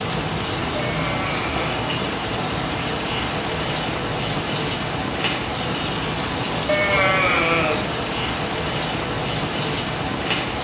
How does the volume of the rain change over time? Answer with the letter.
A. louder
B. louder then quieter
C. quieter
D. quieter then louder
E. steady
E.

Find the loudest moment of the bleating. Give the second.
7 s.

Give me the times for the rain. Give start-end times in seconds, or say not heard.
0.0-10.5.